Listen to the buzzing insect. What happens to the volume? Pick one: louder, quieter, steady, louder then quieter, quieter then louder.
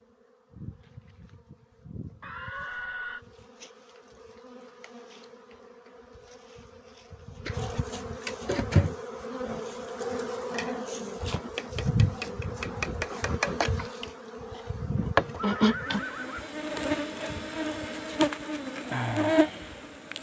louder.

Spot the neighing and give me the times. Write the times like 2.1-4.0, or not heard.
2.2-3.2, 14.9-16.5.